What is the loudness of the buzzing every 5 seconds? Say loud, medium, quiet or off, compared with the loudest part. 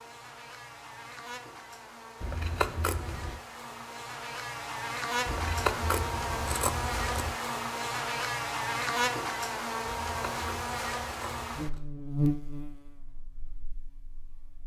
medium, loud, loud.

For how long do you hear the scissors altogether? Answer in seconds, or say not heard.
5 s.